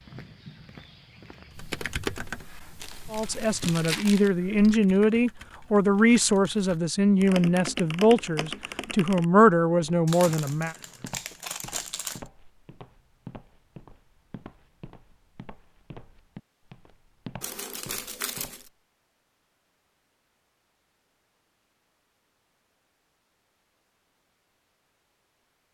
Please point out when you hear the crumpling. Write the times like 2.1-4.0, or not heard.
2.8-4.3, 10.1-12.2, 17.4-18.7.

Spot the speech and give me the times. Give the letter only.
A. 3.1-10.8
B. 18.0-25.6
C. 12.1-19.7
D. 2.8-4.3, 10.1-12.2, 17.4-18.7
A.